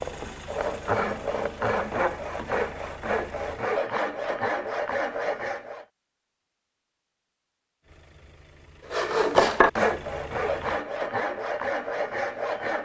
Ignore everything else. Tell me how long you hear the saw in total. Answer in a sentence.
You can hear the saw for 10 seconds altogether.